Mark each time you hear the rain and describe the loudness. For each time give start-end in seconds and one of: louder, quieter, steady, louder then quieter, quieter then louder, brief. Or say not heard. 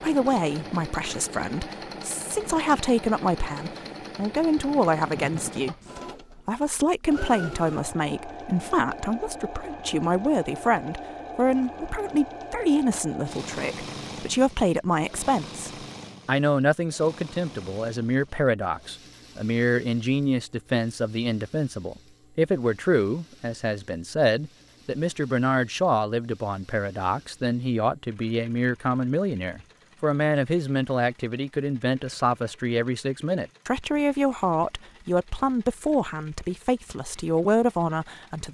not heard.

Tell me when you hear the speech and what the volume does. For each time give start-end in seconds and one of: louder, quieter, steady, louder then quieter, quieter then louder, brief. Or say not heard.
0.0-38.5 steady.